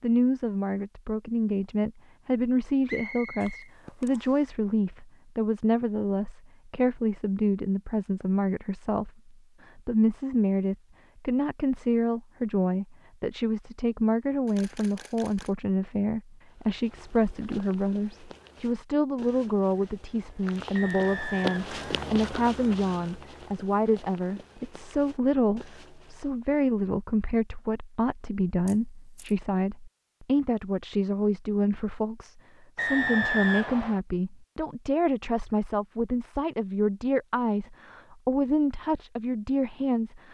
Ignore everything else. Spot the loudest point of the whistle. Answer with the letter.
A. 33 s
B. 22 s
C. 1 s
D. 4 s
A.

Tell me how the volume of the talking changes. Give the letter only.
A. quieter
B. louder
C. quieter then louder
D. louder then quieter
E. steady
E.